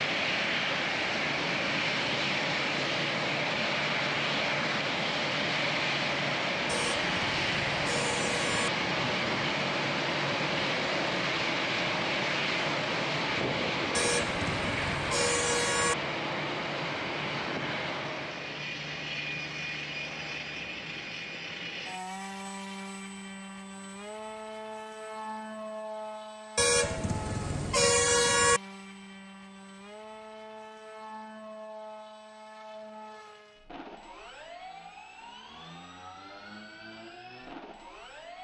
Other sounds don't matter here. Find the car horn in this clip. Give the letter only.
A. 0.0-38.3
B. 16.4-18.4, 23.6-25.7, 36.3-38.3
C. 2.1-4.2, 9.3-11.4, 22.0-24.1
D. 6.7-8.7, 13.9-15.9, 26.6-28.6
D.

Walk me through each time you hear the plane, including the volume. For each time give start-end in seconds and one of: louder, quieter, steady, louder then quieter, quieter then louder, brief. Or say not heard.
0.0-38.3 quieter.